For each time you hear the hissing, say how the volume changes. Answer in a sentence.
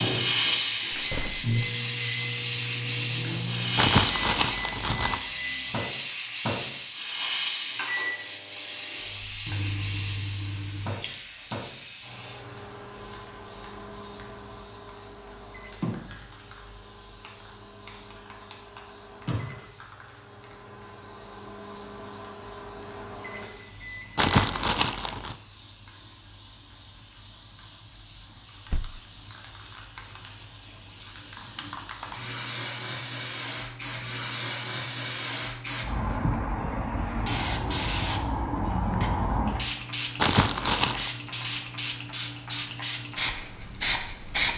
You can hear the hissing from 0.0 to 44.5 s, getting quieter then louder.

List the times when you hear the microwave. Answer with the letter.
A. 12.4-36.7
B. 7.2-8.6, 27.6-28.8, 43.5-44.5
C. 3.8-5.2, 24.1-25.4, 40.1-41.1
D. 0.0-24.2
D.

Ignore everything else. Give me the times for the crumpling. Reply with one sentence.
The crumpling can be heard from 3.8 to 5.2 s, from 24.1 to 25.4 s and from 40.1 to 41.1 s.